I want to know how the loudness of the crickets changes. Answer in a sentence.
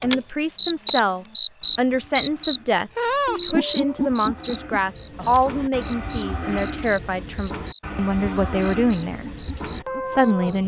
The volume of the crickets goes down.